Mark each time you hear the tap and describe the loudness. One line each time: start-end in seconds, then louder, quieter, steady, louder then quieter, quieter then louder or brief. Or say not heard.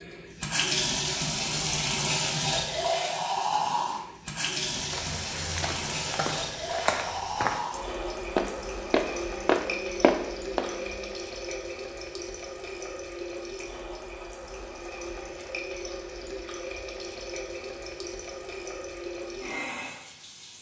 0.0-20.5 quieter.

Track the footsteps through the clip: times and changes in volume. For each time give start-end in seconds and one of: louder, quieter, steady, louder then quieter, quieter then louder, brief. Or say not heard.
4.8-10.8 louder.